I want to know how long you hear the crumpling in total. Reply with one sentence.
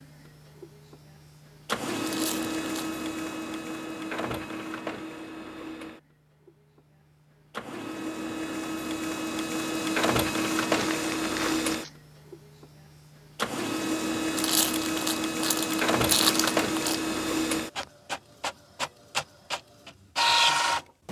You can hear the crumpling for 5 seconds altogether.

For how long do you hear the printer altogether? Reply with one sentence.
The printer can be heard for 21 seconds in total.